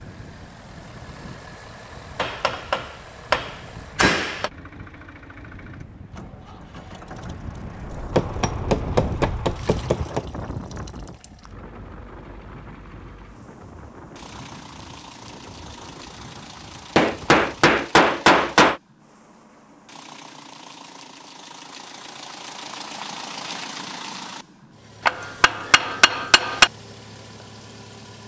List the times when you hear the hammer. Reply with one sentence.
You can hear the hammer from 2.1 to 4.5 s, from 8.2 to 10.2 s, from 16.9 to 18.8 s and from 25.1 to 26.7 s.